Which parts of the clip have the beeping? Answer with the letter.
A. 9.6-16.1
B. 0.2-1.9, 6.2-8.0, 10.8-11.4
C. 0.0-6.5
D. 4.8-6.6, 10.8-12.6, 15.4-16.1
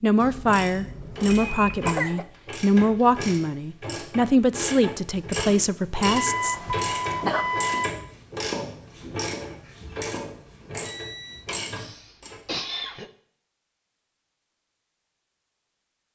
B.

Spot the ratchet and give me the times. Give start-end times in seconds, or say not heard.
0.5-12.4.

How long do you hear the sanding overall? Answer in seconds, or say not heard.
not heard.